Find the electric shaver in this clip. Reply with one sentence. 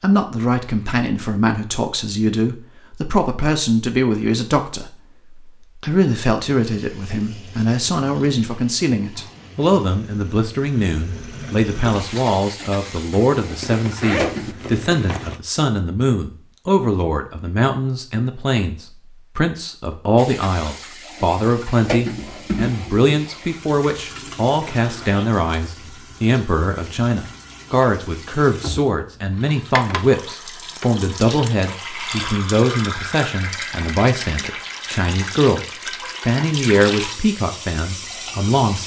The electric shaver can't be heard in this clip.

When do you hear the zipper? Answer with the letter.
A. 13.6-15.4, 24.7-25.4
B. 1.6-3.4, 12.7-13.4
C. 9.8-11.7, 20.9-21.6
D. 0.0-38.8
A.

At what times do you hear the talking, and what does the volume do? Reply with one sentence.
The talking can be heard from 0.0 to 38.8 s, at a steady volume.